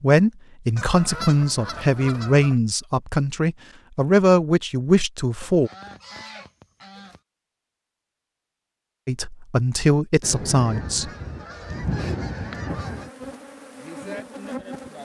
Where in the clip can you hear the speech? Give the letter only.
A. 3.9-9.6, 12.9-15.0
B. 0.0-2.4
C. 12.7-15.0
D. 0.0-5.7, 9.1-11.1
D.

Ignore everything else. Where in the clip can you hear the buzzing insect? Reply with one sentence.
The buzzing insect can be heard from 12.7 to 15.0 s.